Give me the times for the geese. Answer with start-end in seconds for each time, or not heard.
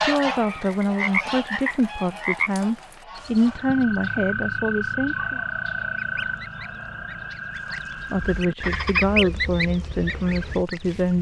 0.0-4.0, 6.0-11.1.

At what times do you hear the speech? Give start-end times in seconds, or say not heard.
0.0-5.4, 8.1-11.1.